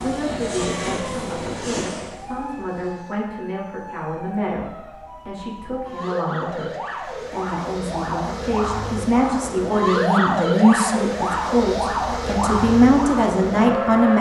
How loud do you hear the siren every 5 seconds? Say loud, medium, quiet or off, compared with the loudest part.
quiet, medium, loud.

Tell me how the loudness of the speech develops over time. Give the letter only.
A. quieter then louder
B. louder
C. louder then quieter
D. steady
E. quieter
B.